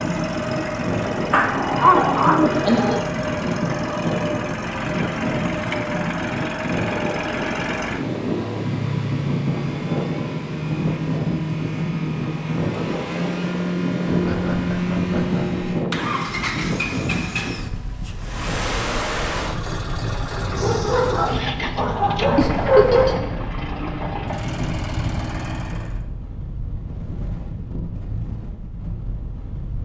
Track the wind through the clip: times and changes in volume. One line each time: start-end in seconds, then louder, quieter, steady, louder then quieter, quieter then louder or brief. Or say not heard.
0.0-29.8 quieter.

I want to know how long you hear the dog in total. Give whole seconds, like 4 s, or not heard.
4 s.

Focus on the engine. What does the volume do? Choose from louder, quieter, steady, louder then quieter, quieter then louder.
steady.